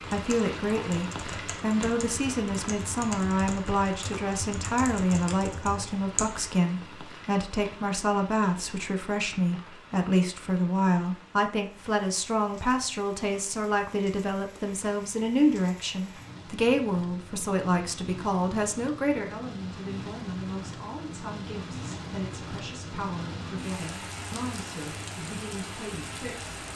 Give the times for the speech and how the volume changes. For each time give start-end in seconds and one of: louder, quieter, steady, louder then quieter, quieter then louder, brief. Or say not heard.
0.1-26.6 quieter.